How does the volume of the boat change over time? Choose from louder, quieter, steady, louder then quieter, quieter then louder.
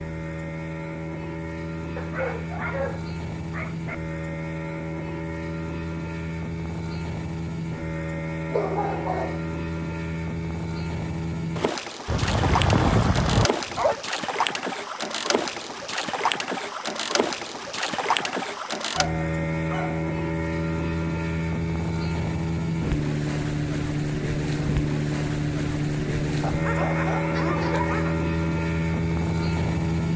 louder.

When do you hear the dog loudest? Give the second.
13 s.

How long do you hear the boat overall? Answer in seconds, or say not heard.
30 s.